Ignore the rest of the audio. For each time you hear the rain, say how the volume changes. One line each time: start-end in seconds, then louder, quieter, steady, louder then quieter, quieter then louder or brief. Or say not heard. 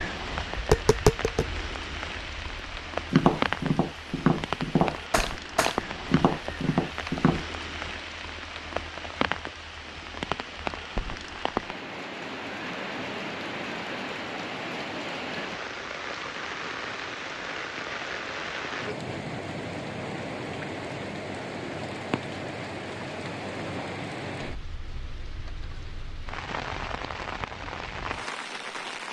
0.0-29.0 steady.